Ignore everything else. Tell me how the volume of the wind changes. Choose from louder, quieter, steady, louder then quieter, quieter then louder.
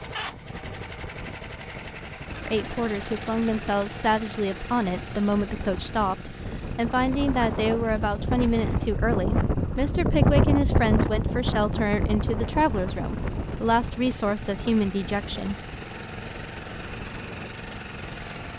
louder then quieter.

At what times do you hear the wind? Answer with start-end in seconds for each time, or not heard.
0.0-18.5.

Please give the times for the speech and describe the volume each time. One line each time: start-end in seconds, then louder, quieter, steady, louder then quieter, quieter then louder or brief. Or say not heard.
2.5-15.6 steady.